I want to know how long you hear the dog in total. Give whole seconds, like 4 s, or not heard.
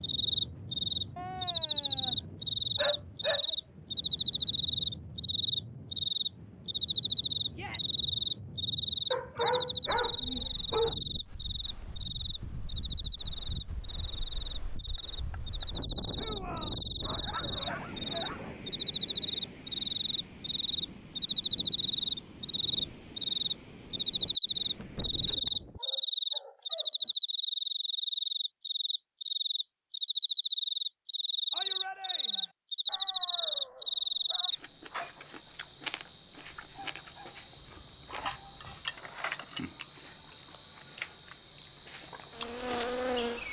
12 s.